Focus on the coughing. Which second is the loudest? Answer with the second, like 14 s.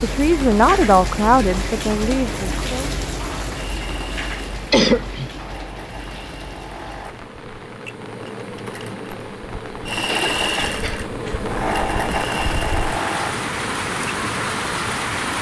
5 s.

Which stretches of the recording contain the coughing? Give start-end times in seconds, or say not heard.
4.7-5.3, 10.1-11.9.